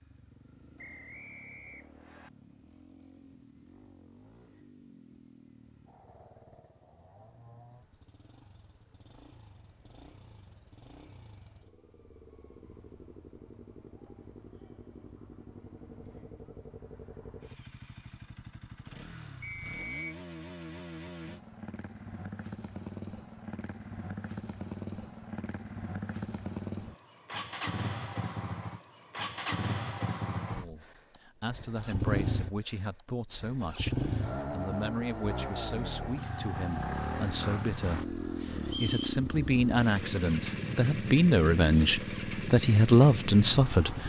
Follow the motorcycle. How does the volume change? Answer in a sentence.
The volume of the motorcycle goes up.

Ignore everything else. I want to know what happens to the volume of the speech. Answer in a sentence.
The volume of the speech goes up.